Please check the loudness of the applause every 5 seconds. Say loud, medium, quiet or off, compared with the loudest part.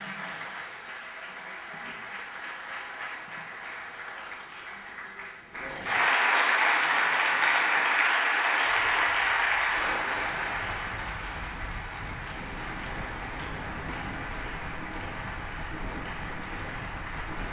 quiet, loud, medium, quiet.